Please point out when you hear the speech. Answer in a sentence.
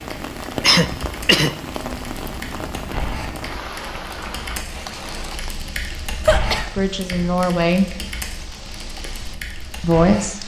You can hear the speech from 6.8 to 7.8 s and from 9.8 to 10.4 s.